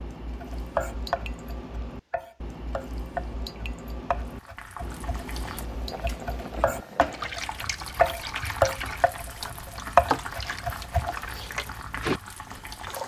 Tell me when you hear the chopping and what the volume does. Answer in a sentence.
You can hear the chopping from 0.4 to 11.5 s, getting louder.